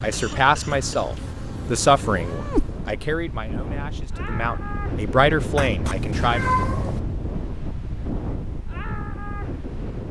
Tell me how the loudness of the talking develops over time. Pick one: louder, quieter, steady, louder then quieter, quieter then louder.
quieter then louder.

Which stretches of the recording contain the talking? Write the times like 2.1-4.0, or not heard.
0.0-6.4.